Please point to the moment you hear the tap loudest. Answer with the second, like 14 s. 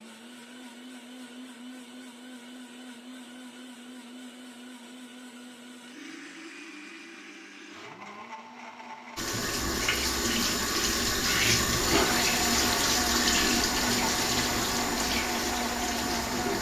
12 s.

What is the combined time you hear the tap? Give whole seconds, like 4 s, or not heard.
7 s.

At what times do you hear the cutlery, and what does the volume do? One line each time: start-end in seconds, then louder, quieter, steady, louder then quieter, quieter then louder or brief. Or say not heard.
not heard.